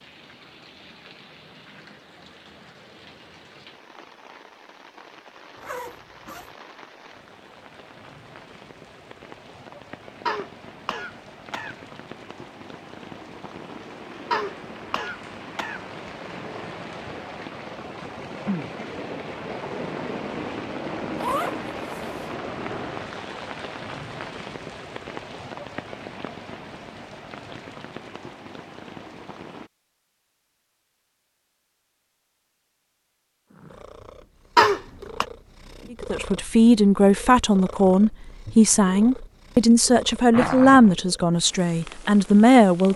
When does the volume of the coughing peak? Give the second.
35 s.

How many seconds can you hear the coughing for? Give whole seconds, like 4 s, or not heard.
4 s.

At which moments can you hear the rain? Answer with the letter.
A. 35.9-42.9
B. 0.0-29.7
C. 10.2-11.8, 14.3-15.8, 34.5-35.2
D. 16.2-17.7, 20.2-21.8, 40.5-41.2
B.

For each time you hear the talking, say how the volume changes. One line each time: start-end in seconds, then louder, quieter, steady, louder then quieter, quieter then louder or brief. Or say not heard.
35.9-42.9 steady.